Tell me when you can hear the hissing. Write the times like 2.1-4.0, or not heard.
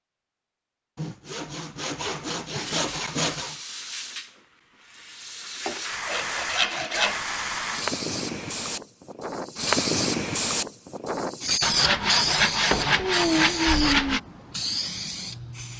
2.5-15.7.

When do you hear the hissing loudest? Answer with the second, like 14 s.
10 s.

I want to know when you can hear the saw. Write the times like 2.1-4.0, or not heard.
0.9-3.5, 5.7-7.2, 11.6-14.2.